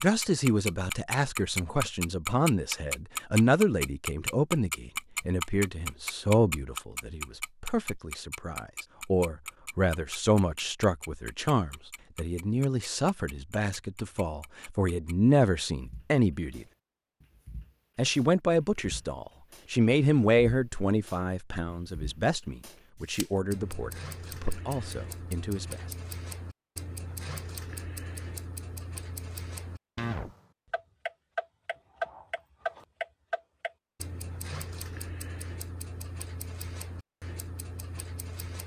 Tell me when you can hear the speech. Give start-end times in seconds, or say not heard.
0.0-16.6, 17.9-25.8.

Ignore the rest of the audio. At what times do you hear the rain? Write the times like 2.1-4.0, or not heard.
not heard.